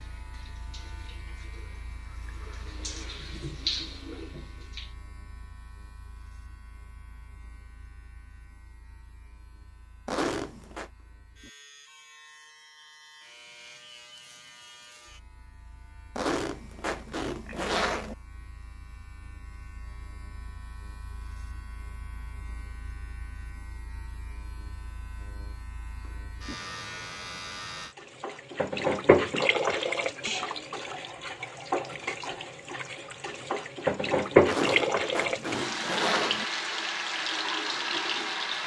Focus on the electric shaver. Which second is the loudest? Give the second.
27 s.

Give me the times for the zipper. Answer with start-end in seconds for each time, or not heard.
10.1-10.9, 16.1-18.1, 34.5-36.5.